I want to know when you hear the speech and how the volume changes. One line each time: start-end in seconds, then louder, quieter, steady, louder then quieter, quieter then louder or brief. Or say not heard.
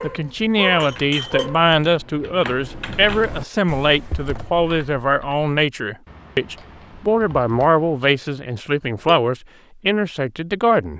0.0-10.9 steady.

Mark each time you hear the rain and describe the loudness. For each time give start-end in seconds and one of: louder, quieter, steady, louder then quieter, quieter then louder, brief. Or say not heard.
not heard.